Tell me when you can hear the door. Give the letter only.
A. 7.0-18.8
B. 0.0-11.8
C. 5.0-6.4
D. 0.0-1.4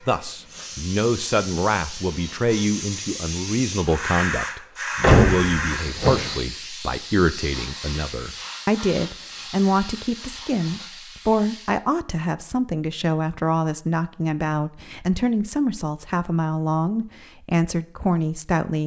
C.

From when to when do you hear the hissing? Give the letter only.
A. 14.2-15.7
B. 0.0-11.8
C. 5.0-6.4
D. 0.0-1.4
B.